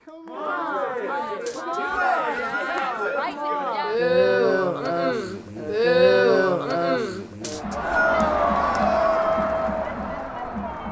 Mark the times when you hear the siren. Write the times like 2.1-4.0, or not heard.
not heard.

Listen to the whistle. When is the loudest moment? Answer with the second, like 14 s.
8 s.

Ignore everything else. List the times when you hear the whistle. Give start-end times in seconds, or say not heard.
1.4-3.4, 7.4-8.2.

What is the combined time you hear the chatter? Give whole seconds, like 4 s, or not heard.
11 s.